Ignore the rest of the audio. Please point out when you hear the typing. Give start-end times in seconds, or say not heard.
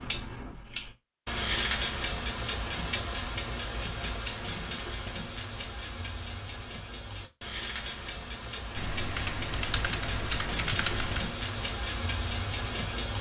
8.8-11.3.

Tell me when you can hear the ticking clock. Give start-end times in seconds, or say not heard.
0.0-13.1.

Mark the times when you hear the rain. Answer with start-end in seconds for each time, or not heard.
not heard.